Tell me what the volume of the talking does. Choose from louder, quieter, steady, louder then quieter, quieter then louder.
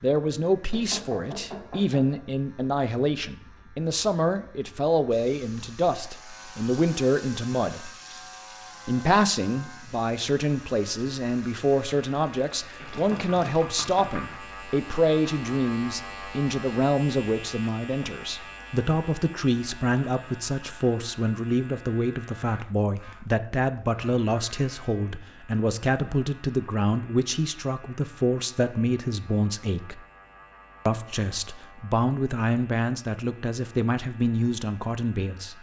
steady.